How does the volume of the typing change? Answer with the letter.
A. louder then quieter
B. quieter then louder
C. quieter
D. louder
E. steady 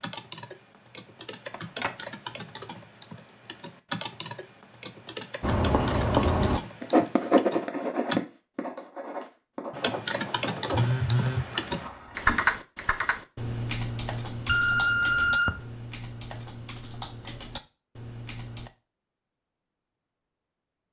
A.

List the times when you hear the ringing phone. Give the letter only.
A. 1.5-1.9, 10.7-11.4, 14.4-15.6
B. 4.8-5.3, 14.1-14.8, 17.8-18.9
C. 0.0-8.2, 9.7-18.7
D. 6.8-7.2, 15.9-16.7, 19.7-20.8
A.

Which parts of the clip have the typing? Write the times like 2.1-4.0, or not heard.
0.0-8.2, 9.7-18.7.